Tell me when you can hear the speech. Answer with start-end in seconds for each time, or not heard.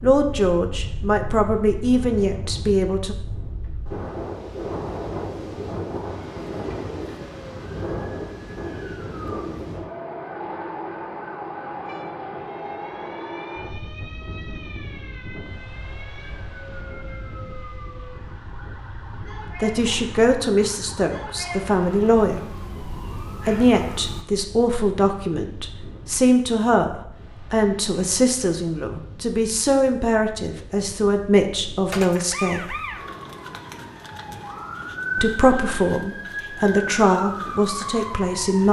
0.0-3.1, 19.6-22.4, 23.4-32.8, 35.1-38.6.